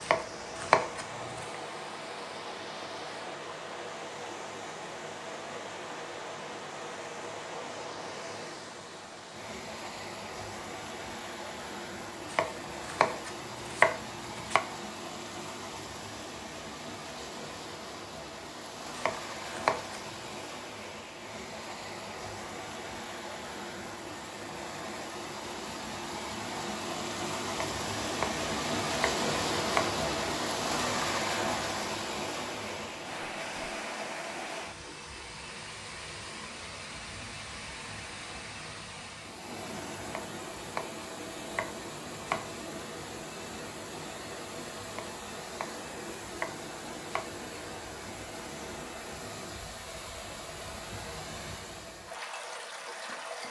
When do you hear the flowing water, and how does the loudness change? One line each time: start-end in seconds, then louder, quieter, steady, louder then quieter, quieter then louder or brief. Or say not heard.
0.0-53.4 louder then quieter.